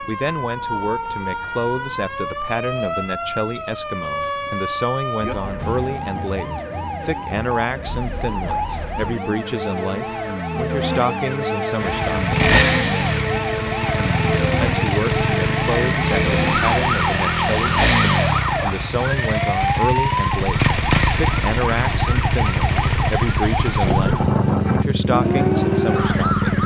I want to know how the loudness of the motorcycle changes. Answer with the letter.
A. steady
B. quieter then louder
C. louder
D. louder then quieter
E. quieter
A.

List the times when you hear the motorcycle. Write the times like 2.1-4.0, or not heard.
11.8-26.6.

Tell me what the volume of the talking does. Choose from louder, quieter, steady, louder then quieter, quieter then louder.
steady.